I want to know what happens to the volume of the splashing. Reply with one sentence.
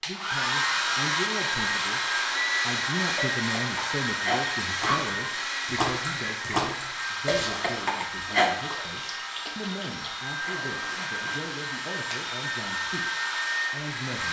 The loudness of the splashing goes down.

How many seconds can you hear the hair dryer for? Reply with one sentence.
You can hear the hair dryer for 14 seconds altogether.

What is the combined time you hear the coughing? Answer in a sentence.
You can hear the coughing for 3 seconds altogether.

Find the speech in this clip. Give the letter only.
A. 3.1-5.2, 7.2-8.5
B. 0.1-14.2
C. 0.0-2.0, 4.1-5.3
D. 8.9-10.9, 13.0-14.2
B.